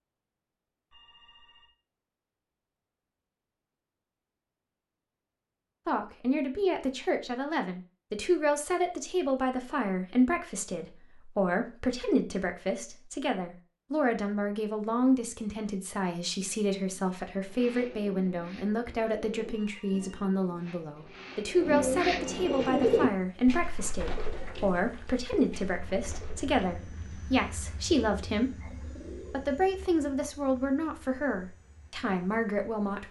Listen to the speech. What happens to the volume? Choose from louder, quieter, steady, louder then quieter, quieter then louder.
steady.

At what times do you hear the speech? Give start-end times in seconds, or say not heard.
5.8-28.7, 29.3-33.0.